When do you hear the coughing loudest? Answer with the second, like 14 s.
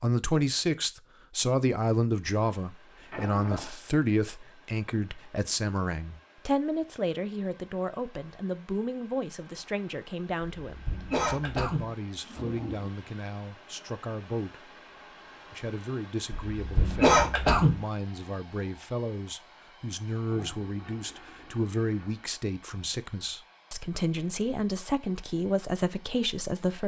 17 s.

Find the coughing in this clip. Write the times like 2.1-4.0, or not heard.
10.7-11.9, 16.3-17.8.